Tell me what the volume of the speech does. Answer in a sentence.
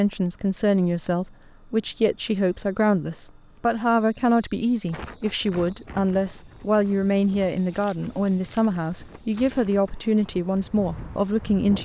The volume of the speech stays about the same.